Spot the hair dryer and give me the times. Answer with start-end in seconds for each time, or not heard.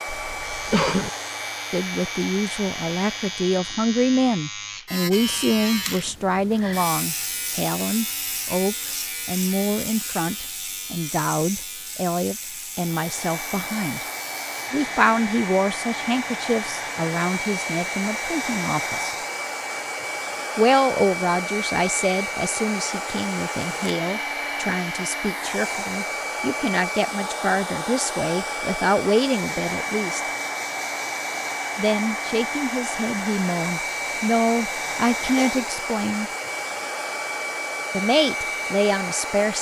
0.0-3.6, 12.8-39.5.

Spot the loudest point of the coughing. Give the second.
1 s.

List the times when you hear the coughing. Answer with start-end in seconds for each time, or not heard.
0.1-1.1, 35.0-35.6.